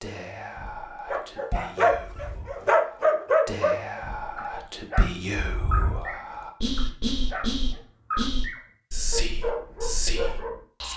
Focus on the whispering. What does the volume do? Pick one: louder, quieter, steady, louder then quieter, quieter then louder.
louder.